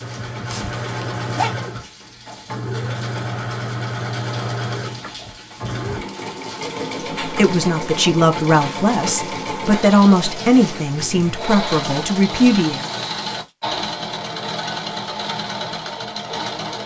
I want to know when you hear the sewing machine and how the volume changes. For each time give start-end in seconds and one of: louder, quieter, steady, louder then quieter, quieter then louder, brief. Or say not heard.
0.0-16.8 steady.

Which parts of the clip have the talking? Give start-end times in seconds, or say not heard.
7.2-12.8.